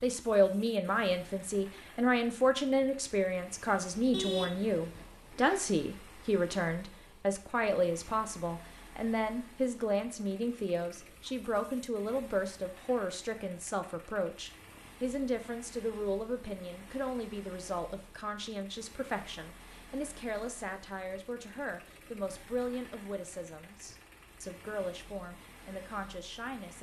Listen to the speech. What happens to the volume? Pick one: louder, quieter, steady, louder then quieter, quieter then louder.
quieter.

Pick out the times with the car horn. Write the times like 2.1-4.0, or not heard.
4.1-5.7.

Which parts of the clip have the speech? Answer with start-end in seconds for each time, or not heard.
0.0-26.7.